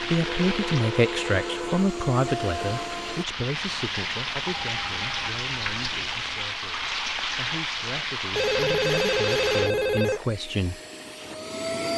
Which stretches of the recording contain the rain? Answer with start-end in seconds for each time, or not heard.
0.0-9.7.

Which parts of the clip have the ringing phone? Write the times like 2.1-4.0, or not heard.
0.2-1.9, 4.5-6.5, 8.3-10.2.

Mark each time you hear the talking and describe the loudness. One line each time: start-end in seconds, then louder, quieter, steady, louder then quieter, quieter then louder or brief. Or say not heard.
0.0-10.8 quieter then louder.